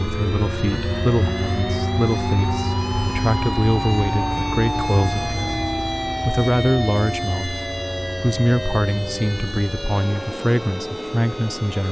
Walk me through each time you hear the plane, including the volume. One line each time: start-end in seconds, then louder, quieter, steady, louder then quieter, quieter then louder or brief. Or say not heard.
0.0-11.8 quieter.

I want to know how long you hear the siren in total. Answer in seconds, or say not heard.
12 s.